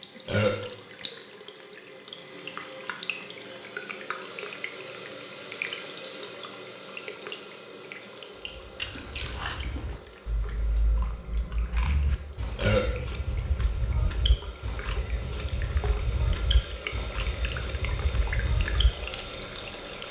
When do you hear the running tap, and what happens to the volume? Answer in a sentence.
The running tap can be heard from 0.0 to 20.0 s, getting quieter then louder.